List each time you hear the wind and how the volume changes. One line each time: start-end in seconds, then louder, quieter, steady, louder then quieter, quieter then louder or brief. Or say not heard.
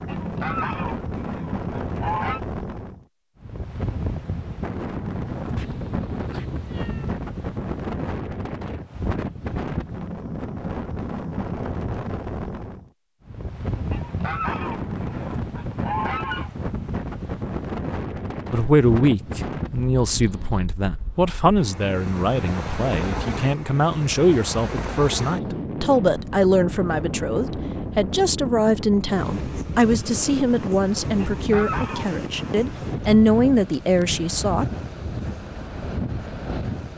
0.0-36.9 steady.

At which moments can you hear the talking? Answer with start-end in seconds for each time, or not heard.
18.5-34.6.